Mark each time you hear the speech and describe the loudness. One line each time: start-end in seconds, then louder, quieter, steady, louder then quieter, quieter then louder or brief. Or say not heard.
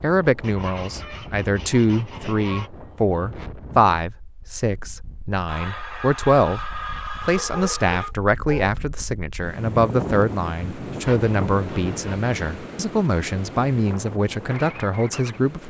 0.0-15.6 steady.